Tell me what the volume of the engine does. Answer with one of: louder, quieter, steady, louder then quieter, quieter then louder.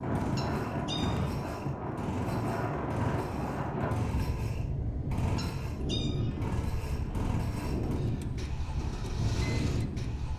steady.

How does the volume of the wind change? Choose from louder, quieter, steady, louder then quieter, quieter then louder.
steady.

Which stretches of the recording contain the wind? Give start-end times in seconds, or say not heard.
0.0-10.3.